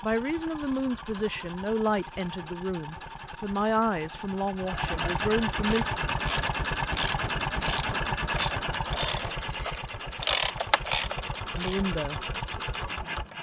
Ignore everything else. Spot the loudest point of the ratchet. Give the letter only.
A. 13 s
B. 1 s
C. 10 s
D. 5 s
C.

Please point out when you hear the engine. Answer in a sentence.
You can hear the engine from 0.0 to 13.3 s.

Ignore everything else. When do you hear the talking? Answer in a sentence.
You can hear the talking from 0.0 to 5.8 s and from 11.6 to 12.2 s.